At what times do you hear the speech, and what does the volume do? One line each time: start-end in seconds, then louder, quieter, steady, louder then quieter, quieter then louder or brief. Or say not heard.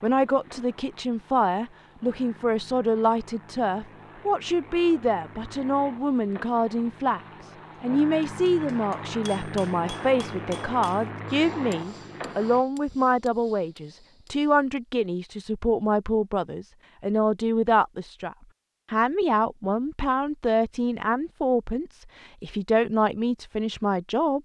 0.0-7.2 steady
7.8-24.4 steady.